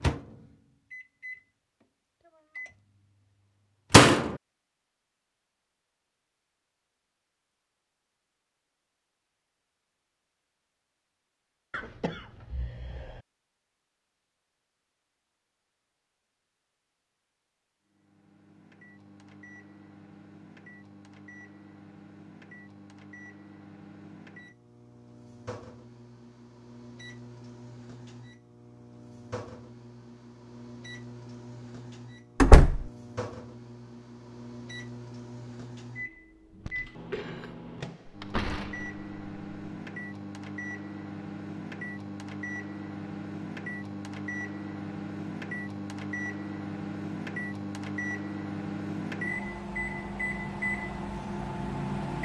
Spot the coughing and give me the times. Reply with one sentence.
You can hear the coughing from 11.7 to 13.2 s and from 36.6 to 37.6 s.